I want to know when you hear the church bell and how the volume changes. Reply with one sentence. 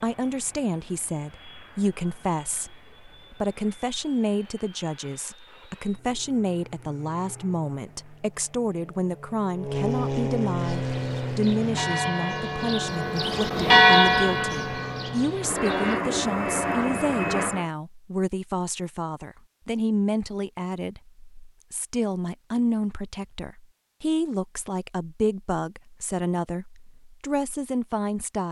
The church bell can be heard from 10.6 to 16.0 s, getting louder then quieter.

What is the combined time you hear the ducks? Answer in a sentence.
You can't hear the ducks here.